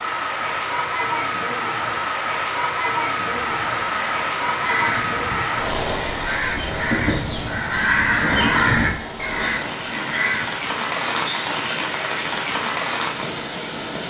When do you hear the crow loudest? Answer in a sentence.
The volume of the crow peaks at 9 seconds.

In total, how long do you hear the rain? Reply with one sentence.
The rain can be heard for 14 seconds in total.